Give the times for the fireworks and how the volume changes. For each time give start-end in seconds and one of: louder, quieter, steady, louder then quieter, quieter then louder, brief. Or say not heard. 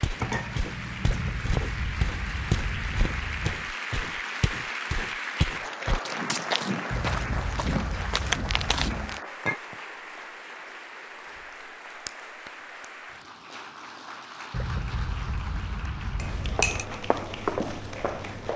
not heard.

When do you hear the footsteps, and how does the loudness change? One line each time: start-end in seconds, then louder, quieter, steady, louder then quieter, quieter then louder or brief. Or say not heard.
0.0-9.2 steady
16.2-18.5 brief.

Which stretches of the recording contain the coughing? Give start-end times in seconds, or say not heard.
1.1-3.7, 6.9-9.2, 14.5-16.9.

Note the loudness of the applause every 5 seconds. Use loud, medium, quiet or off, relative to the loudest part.
loud, loud, medium, medium.